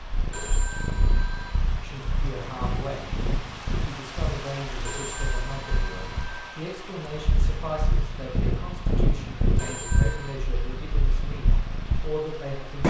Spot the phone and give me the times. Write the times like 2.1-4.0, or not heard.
0.3-1.6, 4.8-6.3, 9.6-10.4.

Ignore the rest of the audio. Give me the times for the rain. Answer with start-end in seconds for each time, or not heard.
0.0-12.8.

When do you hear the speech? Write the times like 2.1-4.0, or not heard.
1.8-12.8.